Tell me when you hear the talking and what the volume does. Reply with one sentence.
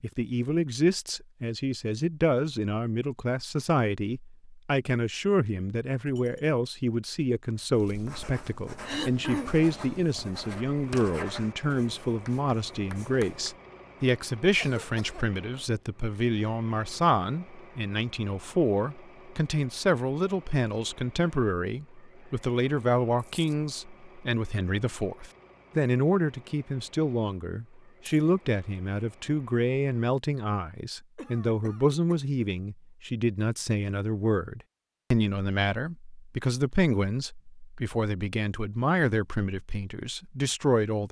The talking can be heard from 0.0 to 41.0 s, at a steady volume.